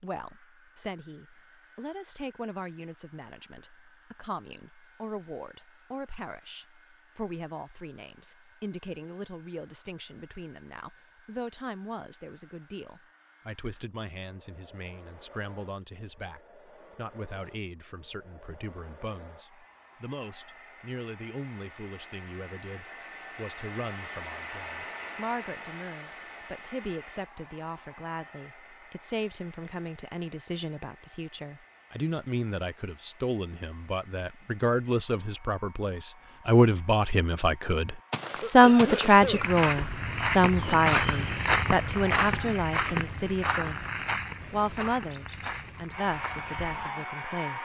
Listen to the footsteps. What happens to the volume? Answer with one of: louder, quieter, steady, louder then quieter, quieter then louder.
louder then quieter.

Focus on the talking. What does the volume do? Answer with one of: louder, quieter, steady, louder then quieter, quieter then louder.
louder.